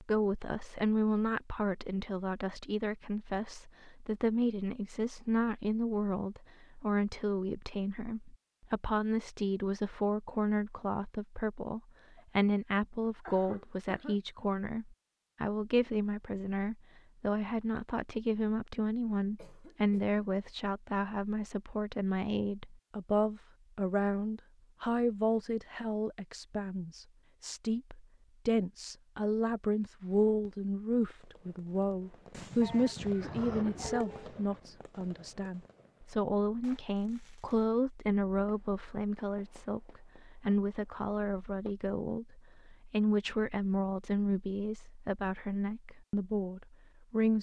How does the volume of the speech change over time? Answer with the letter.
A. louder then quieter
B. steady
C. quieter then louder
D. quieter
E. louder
B.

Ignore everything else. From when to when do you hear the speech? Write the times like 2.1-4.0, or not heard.
0.0-47.3.